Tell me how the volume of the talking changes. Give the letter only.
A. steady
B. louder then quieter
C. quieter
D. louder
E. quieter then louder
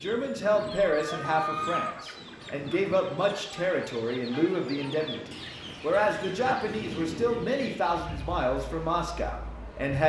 A.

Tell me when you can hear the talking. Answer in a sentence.
The talking can be heard from 0.0 to 10.0 s.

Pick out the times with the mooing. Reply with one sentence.
The mooing can't be heard in this clip.